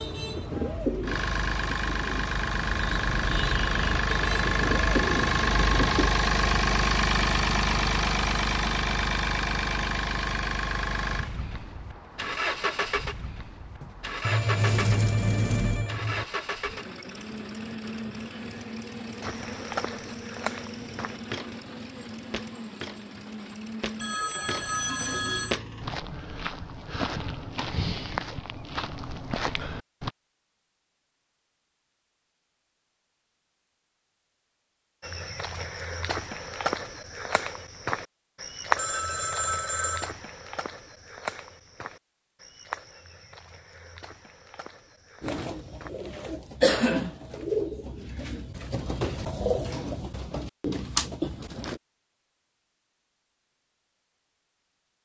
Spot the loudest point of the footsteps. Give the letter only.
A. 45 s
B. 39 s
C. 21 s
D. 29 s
B.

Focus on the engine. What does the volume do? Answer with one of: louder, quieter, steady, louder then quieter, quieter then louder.
quieter.